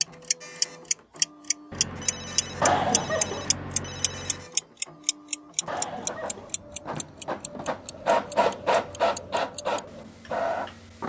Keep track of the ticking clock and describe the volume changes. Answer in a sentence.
The loudness of the ticking clock goes down.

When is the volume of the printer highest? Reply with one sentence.
The volume of the printer peaks at 9 seconds.